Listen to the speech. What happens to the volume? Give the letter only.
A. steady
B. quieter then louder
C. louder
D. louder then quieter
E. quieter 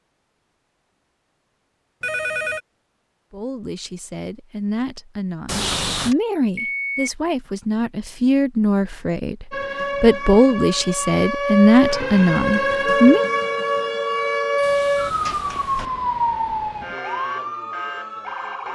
C.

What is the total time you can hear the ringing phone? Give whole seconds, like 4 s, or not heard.
3 s.